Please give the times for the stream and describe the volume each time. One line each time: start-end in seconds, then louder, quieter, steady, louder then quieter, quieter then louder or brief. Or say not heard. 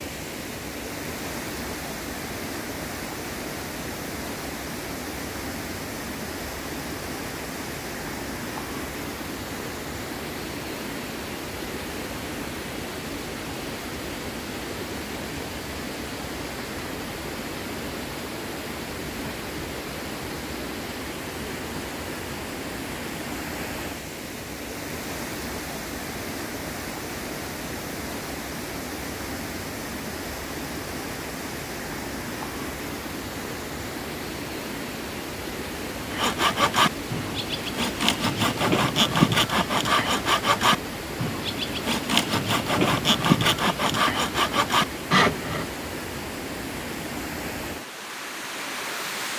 0.0-49.3 steady.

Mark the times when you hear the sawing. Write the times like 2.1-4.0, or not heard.
36.1-45.6.